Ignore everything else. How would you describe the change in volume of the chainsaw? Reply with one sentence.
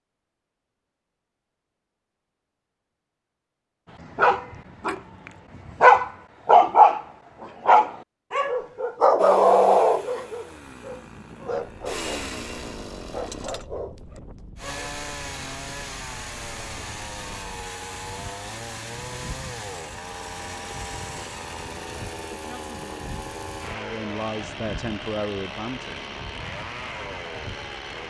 The loudness of the chainsaw stays about the same.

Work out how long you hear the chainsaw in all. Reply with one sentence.
You can hear the chainsaw for 19 seconds altogether.